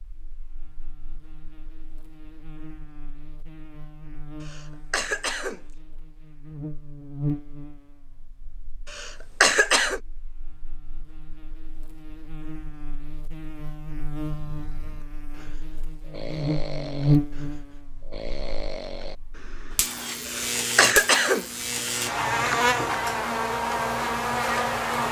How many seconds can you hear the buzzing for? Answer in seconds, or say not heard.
25 s.